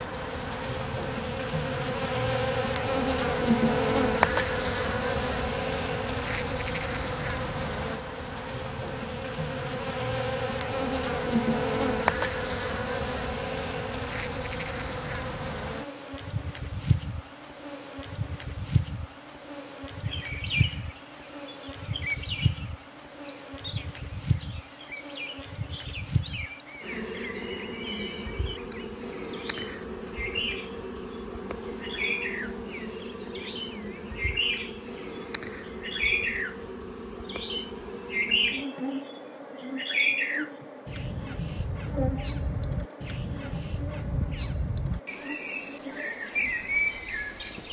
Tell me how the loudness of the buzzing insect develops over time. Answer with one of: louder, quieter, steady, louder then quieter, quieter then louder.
quieter.